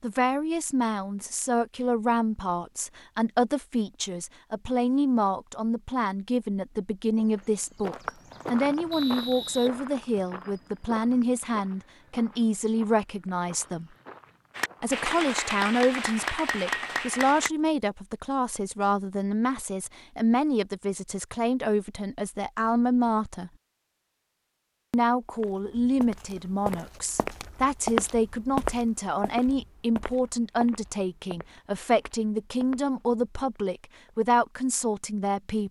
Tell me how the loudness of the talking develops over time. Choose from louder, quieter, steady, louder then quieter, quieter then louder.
steady.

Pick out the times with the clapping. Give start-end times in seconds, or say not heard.
14.6-17.5.